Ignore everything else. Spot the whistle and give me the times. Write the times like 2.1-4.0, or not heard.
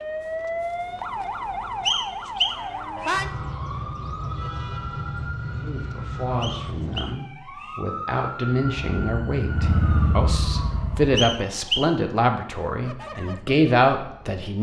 1.9-3.2, 6.4-7.8, 11.2-11.9.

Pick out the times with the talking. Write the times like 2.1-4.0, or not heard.
5.5-14.5.